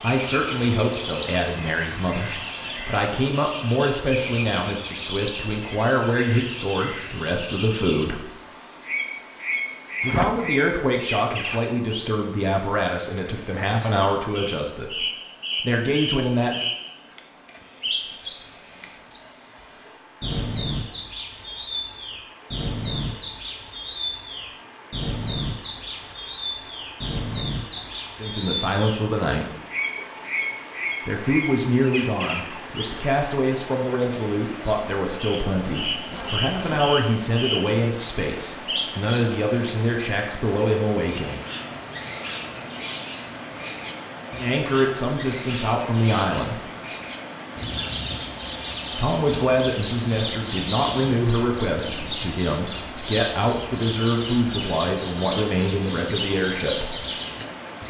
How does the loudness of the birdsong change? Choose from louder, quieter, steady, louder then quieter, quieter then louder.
steady.